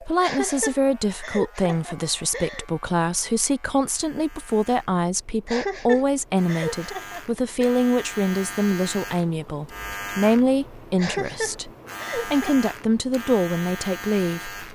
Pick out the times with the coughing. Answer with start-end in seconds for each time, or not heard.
0.2-2.6, 5.5-7.7, 10.9-12.7.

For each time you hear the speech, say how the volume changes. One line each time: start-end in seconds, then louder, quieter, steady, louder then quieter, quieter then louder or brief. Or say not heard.
0.0-14.6 steady.